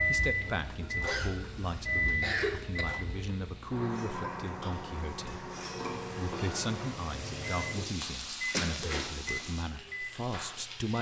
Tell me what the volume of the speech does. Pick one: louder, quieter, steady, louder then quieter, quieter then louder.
steady.